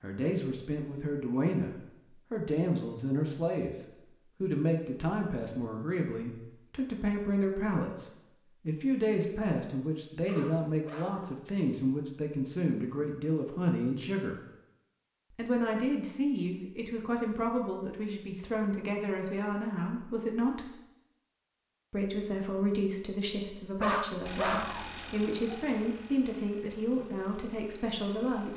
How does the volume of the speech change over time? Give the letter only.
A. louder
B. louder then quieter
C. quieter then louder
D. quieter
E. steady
E.